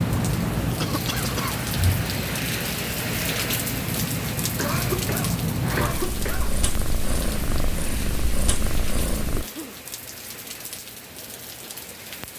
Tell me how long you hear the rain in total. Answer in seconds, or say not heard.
12 s.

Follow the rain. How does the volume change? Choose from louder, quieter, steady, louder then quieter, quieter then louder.
quieter.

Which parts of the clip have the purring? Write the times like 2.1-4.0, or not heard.
0.0-9.4.